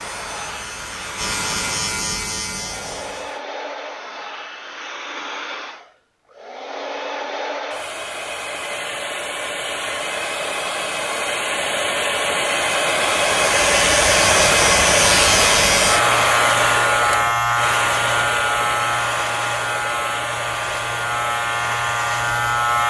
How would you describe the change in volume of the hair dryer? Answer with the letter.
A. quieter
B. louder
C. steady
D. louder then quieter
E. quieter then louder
D.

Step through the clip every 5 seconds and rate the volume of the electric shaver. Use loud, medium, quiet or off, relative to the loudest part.
medium, off, loud, loud, loud.